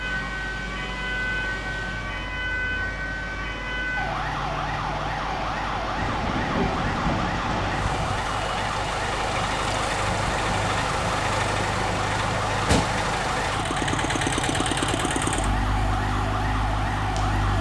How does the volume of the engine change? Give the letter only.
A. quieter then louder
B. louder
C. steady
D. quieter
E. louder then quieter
B.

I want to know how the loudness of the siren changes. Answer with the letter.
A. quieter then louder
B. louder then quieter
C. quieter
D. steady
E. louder
D.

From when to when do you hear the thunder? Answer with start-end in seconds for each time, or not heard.
6.0-8.0.